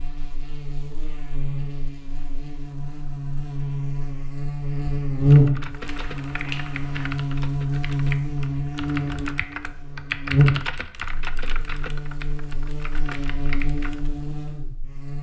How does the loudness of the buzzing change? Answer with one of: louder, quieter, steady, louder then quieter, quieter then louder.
louder then quieter.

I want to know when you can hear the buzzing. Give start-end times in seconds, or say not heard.
0.0-15.1.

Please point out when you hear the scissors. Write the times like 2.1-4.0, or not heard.
5.8-7.1.